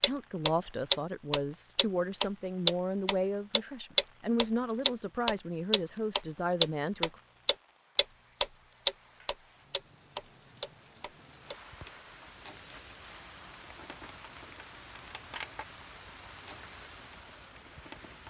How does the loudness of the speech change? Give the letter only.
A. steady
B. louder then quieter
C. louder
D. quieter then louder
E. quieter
A.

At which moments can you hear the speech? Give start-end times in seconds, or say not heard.
0.0-7.1.